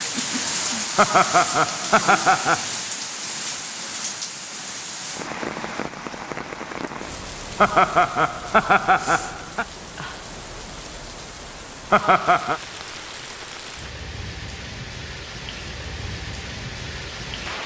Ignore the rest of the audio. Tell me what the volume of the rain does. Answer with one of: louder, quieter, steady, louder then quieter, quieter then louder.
quieter.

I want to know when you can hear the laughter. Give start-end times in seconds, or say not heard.
0.9-2.6, 7.5-9.7, 11.9-12.6.